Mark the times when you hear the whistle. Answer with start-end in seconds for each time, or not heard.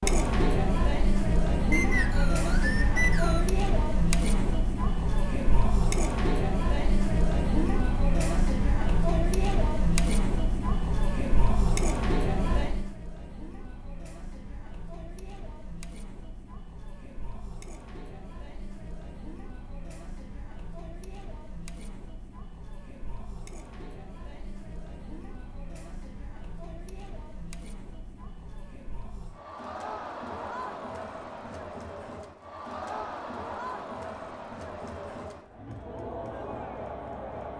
1.7-3.5.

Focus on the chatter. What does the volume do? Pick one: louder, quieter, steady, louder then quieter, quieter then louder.
quieter then louder.